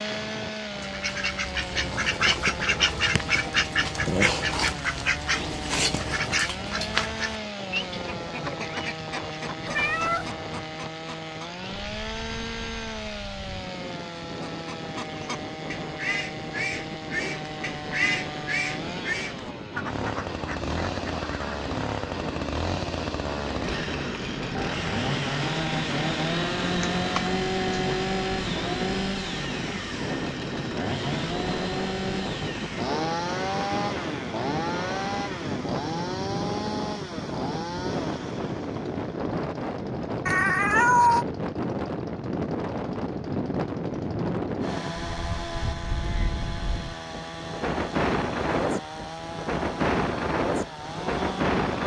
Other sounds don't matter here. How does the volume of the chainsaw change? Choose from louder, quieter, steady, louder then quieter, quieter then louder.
louder then quieter.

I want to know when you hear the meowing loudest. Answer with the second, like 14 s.
41 s.